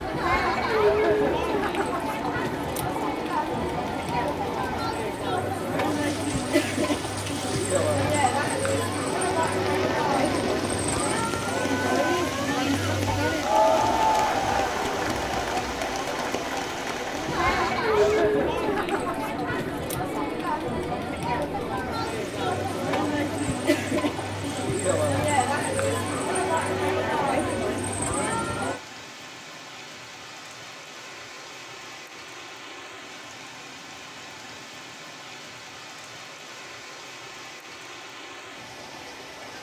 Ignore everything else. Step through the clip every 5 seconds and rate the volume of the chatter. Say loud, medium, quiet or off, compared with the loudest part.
loud, loud, loud, loud, loud, loud, off, off.